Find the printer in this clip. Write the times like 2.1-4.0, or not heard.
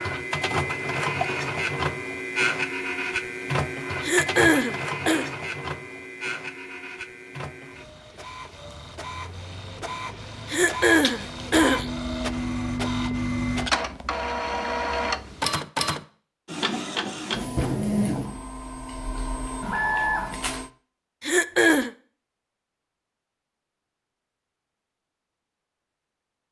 0.0-20.7.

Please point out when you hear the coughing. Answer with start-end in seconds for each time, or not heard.
4.0-5.3, 10.4-11.9, 21.2-21.9.